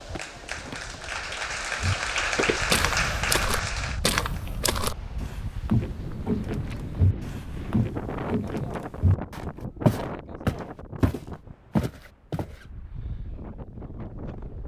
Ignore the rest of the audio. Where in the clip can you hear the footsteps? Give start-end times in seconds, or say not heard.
1.8-12.5.